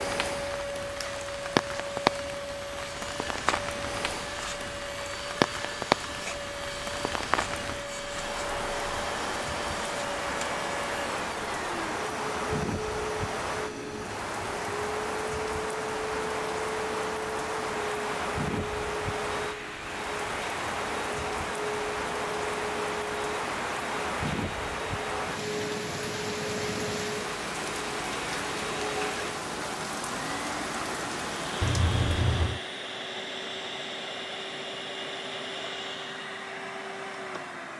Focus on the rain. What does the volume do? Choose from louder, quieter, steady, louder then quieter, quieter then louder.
steady.